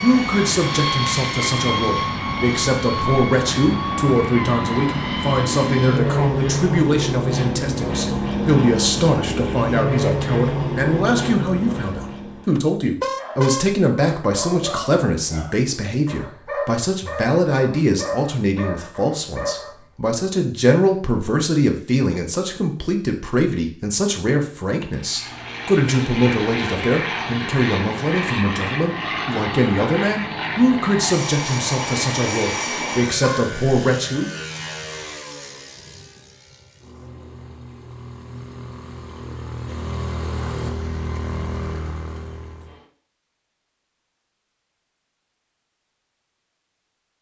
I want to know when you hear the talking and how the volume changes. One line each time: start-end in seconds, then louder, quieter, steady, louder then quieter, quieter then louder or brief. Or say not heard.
0.0-34.3 steady.